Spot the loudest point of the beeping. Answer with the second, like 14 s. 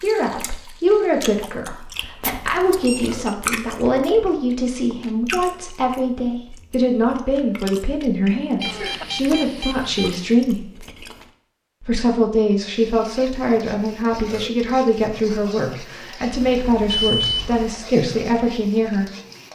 17 s.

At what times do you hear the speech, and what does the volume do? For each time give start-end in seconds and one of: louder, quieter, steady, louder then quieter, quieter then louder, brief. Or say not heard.
0.0-10.7 steady
11.8-19.1 steady.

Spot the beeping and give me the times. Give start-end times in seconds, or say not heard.
2.6-3.4, 8.6-10.3, 16.4-17.8.